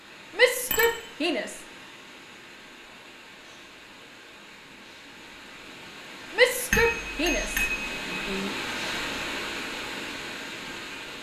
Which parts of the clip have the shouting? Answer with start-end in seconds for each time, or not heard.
0.3-1.6, 6.3-8.5.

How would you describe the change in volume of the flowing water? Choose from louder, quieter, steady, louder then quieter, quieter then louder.
louder.